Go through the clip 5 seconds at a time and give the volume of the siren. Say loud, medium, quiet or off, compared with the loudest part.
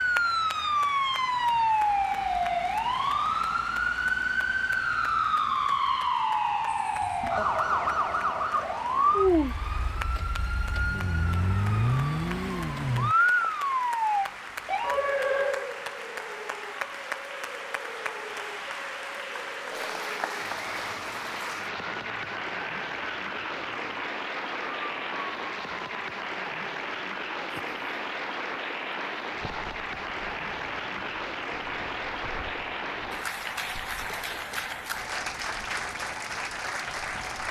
loud, loud, loud, medium, quiet, quiet, quiet, quiet.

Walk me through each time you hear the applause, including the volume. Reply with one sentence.
You can hear the applause from 0.0 to 37.4 s, getting louder.